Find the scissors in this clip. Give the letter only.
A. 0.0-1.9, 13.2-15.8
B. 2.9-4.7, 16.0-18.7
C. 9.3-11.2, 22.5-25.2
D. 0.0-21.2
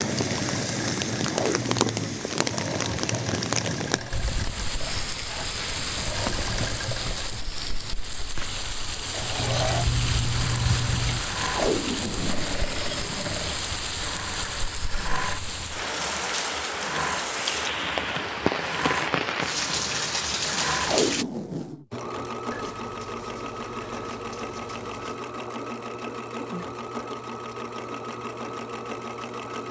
C.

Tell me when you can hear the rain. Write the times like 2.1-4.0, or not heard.
0.0-21.2.